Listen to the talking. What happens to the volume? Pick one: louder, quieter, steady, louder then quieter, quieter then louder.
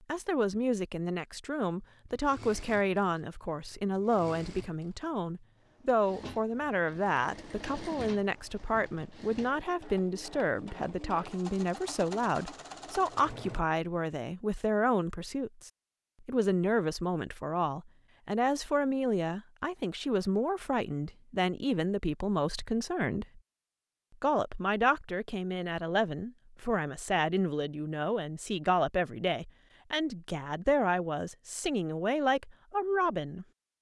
steady.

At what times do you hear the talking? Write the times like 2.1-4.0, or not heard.
0.1-23.4, 24.2-33.5.